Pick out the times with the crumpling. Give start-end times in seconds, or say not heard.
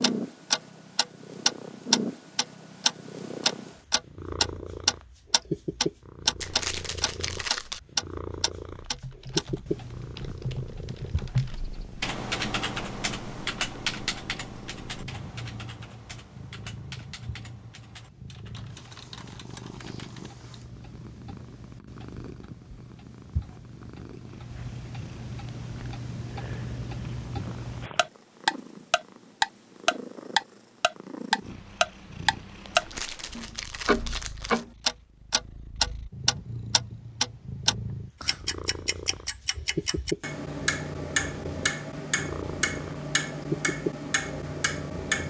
6.4-7.8, 32.8-34.6.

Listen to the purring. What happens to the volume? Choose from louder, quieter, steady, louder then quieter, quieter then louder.
quieter then louder.